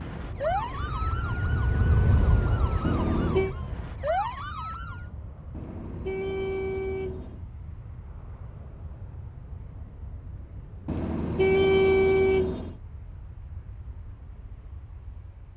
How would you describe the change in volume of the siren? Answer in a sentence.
The loudness of the siren goes down, then up.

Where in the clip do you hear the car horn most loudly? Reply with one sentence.
The loudest moment of the car horn is at 12 seconds.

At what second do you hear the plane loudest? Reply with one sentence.
The volume of the plane peaks at 2 seconds.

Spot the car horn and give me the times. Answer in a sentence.
You can hear the car horn from 2.8 to 3.5 s, from 5.5 to 7.4 s and from 10.8 to 12.8 s.